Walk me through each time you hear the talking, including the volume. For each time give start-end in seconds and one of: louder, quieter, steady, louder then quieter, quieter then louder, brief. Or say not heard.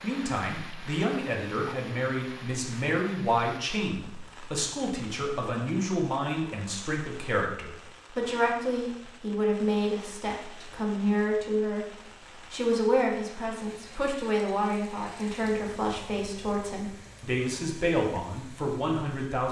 0.0-19.4 steady.